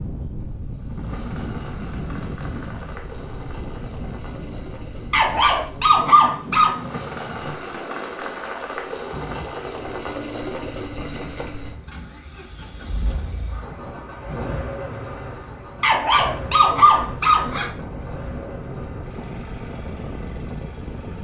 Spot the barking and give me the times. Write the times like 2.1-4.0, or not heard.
5.1-6.8, 15.8-17.7.